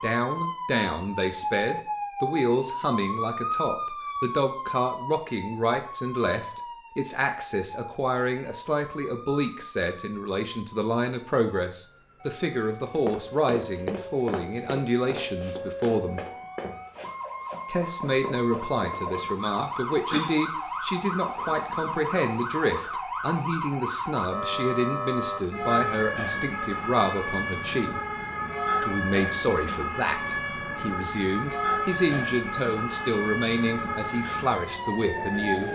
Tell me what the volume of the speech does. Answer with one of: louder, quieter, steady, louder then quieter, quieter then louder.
steady.